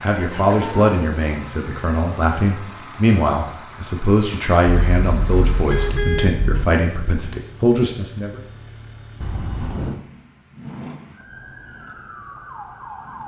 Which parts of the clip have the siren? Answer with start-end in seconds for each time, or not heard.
11.1-13.2.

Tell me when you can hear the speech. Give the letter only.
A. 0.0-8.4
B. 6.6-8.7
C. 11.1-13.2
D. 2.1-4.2
A.